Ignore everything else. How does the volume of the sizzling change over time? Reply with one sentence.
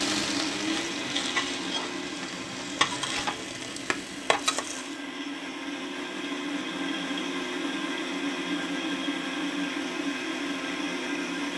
The loudness of the sizzling stays about the same.